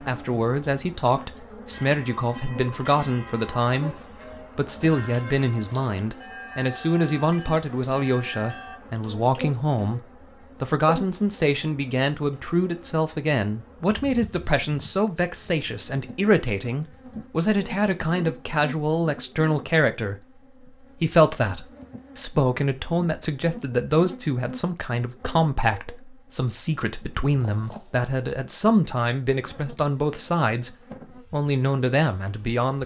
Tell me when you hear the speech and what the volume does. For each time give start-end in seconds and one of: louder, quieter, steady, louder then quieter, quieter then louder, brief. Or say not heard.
0.0-32.8 steady.